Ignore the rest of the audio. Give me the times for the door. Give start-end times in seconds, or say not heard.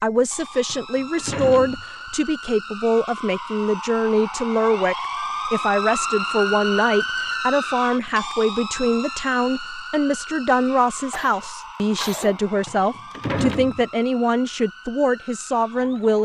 0.7-2.3, 12.7-13.8.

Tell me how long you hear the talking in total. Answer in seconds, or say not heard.
16 s.